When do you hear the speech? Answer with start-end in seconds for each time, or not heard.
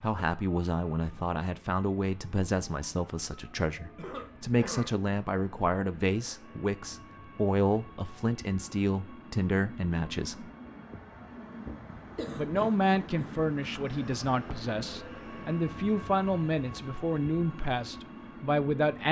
0.0-10.4, 12.3-19.0.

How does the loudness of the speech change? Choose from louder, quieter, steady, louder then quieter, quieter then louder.
steady.